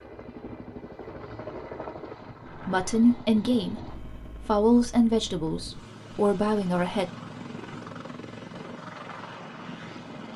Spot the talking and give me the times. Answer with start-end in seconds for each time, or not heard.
2.5-7.0.